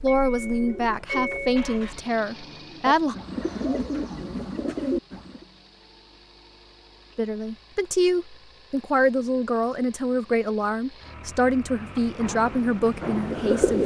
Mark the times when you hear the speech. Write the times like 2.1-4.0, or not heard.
0.0-3.1, 7.2-13.8.